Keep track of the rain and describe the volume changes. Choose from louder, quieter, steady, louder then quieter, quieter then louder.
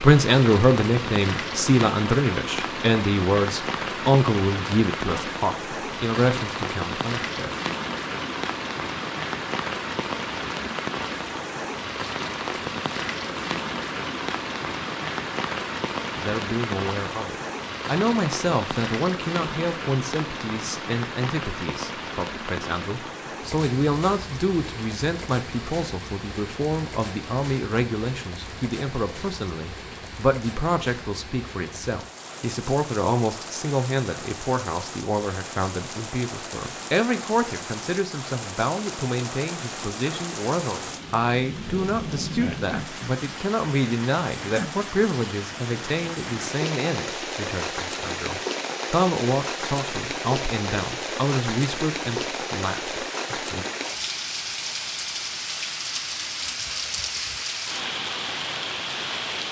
quieter then louder.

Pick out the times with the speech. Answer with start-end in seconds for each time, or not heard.
0.0-7.5, 16.1-53.6.